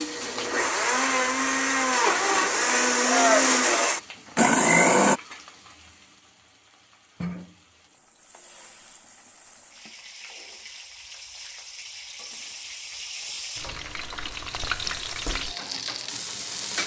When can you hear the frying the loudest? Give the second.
15 s.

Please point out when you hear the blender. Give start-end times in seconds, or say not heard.
0.0-5.2.